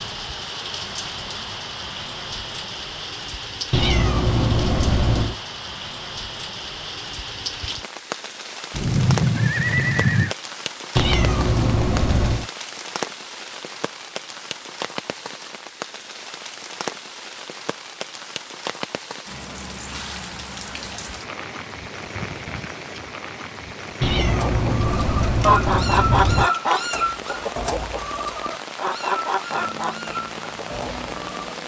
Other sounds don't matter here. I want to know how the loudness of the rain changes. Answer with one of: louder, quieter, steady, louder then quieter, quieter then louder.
steady.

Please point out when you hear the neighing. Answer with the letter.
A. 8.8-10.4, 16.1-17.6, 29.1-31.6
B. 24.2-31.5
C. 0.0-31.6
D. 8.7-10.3
D.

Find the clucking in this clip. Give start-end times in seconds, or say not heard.
24.2-31.5.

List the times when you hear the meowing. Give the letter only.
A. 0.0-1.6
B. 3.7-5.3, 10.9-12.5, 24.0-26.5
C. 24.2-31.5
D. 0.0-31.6
B.